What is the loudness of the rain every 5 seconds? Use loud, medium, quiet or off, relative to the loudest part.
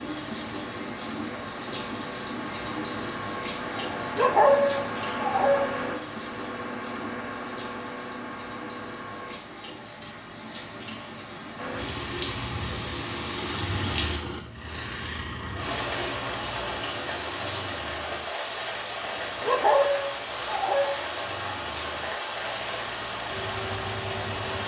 loud, medium, loud, loud, loud.